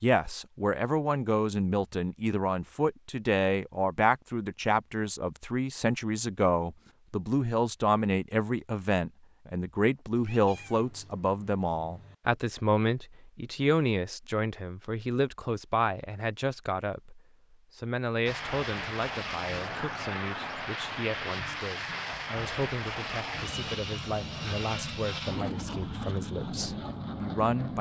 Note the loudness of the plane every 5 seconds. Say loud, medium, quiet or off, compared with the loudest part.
off, off, off, loud, loud, loud.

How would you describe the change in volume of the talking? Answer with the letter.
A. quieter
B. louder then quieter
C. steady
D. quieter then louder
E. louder
A.